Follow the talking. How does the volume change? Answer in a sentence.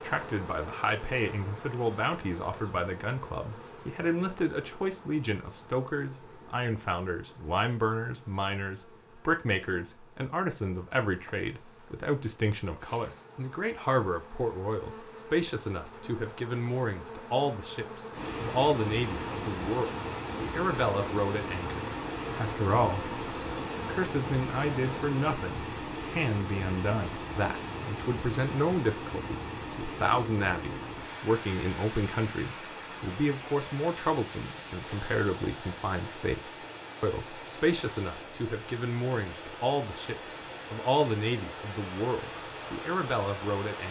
The volume of the talking stays about the same.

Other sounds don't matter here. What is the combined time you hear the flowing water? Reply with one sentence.
The flowing water can be heard for 26 seconds in total.